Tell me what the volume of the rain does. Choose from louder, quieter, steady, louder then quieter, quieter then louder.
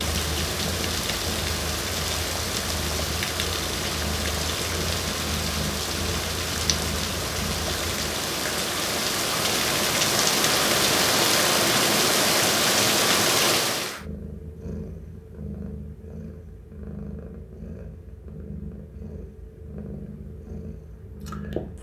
louder.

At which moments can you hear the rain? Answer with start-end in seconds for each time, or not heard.
0.0-14.1.